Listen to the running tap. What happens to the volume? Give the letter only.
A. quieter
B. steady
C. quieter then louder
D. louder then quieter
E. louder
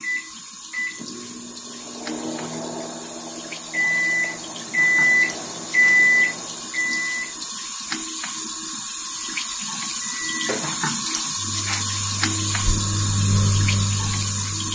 E.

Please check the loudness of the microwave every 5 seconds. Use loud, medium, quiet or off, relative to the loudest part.
medium, loud, medium.